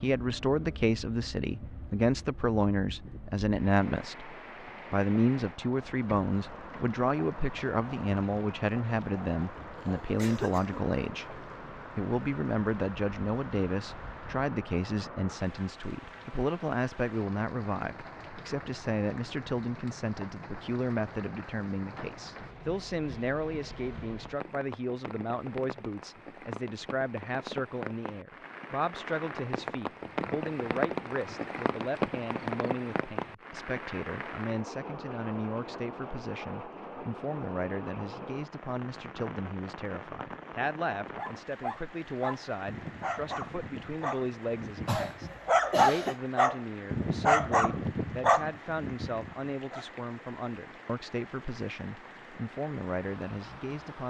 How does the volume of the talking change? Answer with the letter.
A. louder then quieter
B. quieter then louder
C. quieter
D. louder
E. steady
C.